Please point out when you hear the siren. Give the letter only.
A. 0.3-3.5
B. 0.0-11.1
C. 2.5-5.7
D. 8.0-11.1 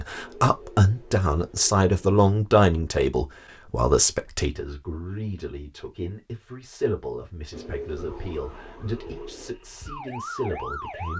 D.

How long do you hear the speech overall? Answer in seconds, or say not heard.
11 s.